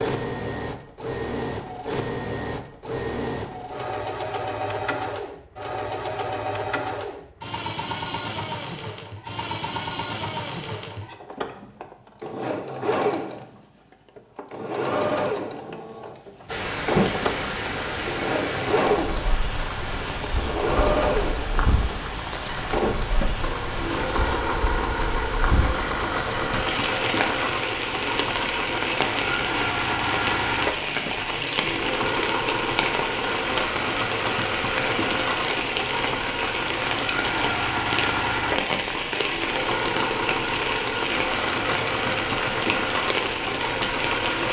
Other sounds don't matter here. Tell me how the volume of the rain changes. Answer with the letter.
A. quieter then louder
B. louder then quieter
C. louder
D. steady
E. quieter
D.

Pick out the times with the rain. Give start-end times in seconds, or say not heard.
16.4-44.4.